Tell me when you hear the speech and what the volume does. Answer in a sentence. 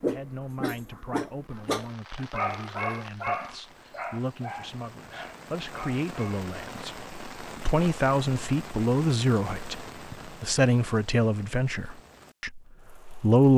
You can hear the speech from 0.0 to 13.5 s, getting louder.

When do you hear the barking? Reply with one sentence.
You can hear the barking from 0.0 to 6.5 s.